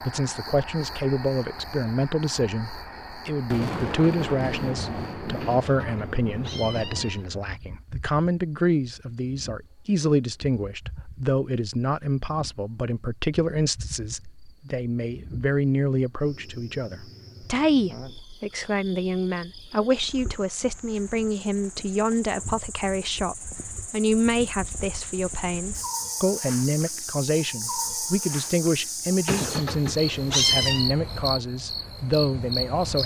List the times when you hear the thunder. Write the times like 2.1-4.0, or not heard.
3.5-7.1.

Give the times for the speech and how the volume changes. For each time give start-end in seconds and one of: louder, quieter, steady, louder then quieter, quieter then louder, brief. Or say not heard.
0.0-33.0 steady.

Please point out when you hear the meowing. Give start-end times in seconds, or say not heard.
5.4-7.2, 29.2-30.9.